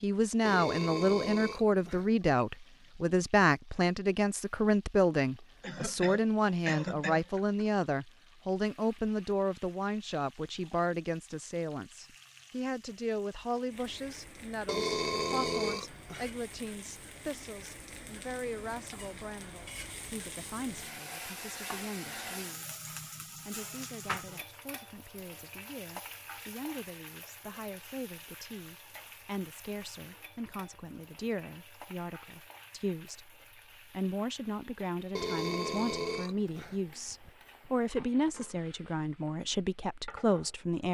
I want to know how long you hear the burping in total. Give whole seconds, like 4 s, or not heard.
5 s.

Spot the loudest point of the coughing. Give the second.
7 s.